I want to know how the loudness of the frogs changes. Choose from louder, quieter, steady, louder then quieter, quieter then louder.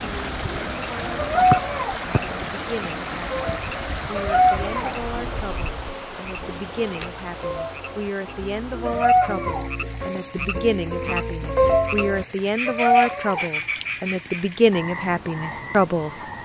louder then quieter.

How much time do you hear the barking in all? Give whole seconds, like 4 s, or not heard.
3 s.